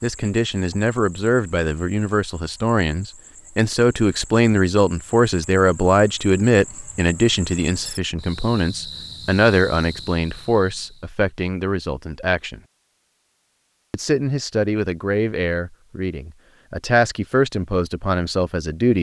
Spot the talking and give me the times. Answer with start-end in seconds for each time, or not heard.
0.0-12.6, 13.9-18.9.